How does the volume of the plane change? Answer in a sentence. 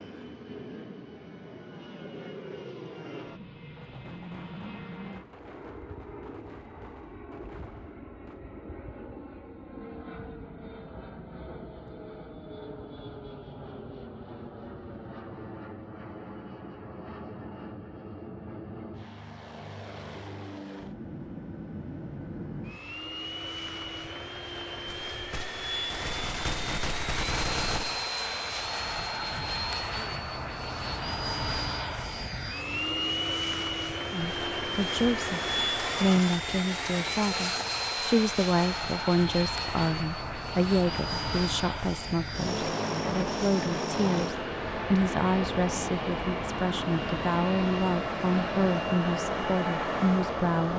The volume of the plane goes up.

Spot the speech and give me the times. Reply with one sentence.
You can hear the speech from 34.1 to 50.7 s.